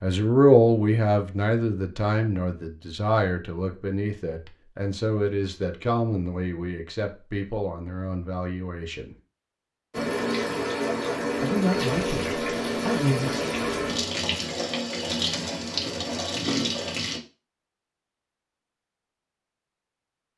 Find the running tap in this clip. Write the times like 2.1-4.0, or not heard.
9.9-17.2.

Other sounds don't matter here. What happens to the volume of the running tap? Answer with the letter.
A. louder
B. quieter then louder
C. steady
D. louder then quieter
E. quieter
C.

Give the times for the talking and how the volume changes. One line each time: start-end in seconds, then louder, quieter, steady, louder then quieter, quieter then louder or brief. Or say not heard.
0.0-9.2 quieter
11.4-13.5 brief.